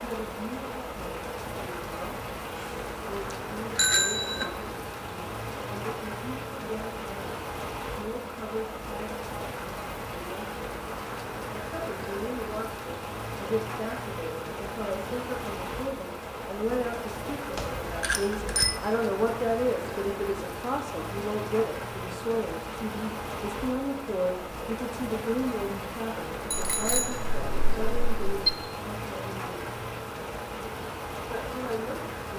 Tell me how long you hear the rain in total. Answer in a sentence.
The rain can be heard for 32 seconds in total.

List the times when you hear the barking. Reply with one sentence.
You can't hear the barking here.